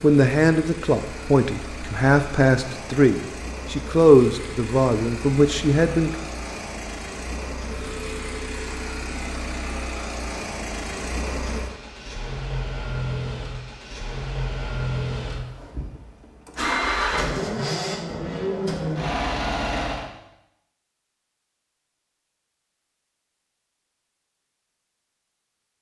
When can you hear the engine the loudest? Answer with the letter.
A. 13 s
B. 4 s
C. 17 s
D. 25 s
C.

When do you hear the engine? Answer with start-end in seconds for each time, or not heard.
0.0-20.1.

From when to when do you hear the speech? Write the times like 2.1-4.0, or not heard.
0.0-6.1.